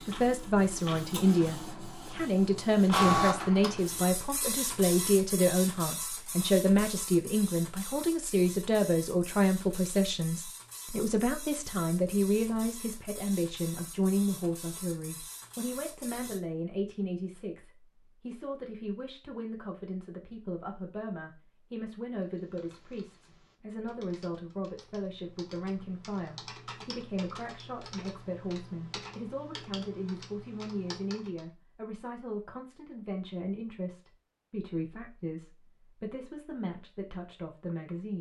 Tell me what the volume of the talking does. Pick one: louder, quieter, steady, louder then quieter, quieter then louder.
quieter.